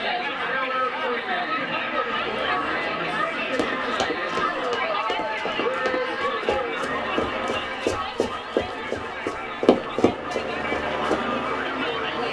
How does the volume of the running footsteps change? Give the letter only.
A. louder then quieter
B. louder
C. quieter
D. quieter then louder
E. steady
B.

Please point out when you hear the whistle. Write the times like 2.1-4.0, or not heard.
not heard.